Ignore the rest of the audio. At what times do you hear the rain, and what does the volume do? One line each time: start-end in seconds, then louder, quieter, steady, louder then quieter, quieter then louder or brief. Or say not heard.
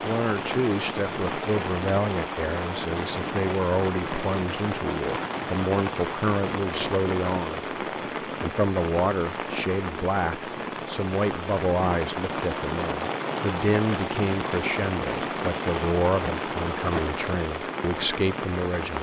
0.0-18.9 steady.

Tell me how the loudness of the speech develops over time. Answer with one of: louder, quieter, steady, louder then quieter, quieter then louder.
steady.